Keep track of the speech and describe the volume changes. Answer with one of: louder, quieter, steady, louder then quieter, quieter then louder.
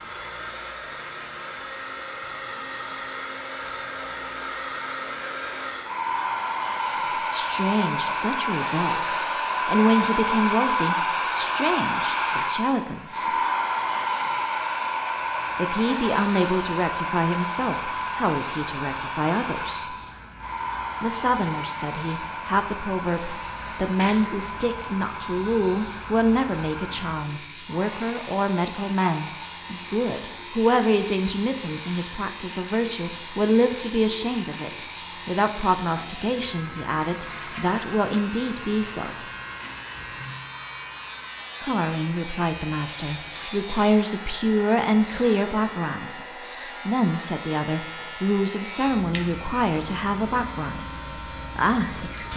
steady.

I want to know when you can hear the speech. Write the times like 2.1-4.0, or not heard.
6.9-13.3, 15.6-19.9, 21.0-39.2, 41.6-46.2, 46.9-52.3.